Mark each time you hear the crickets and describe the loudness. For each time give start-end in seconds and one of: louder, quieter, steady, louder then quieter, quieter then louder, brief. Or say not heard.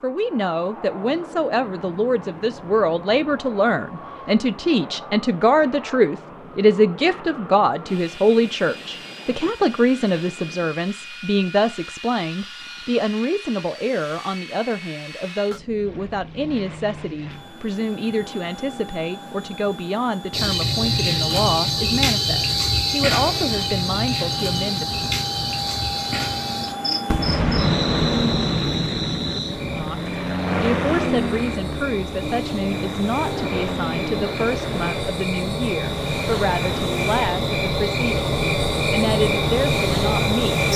20.3-40.7 quieter then louder.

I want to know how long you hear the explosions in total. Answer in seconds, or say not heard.
3 s.